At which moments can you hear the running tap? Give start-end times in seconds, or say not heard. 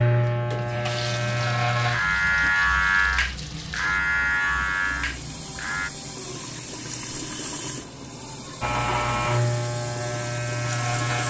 0.1-11.2.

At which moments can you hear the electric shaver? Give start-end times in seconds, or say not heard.
0.0-5.9, 8.6-11.2.